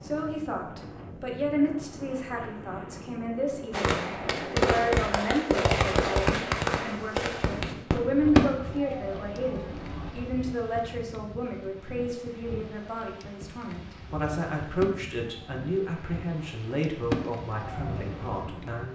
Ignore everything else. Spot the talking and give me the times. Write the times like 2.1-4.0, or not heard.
0.0-18.9.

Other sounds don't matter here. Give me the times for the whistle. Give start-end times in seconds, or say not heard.
not heard.